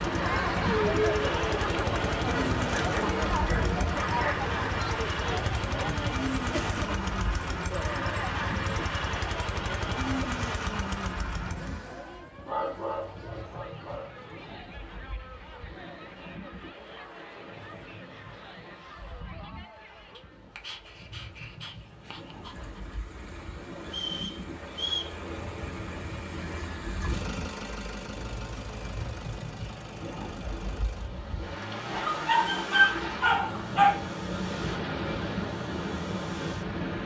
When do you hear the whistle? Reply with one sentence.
You can hear the whistle from 23.9 to 25.1 s.